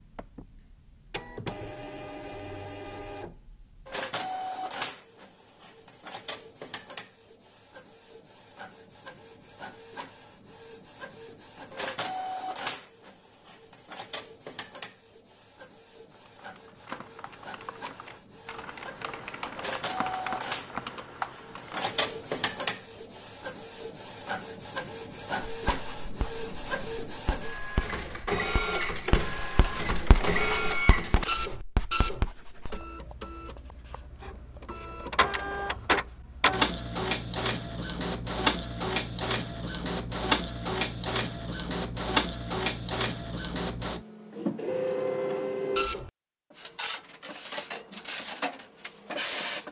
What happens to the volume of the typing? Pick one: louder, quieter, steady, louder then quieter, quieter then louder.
louder.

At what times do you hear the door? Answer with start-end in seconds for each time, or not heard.
not heard.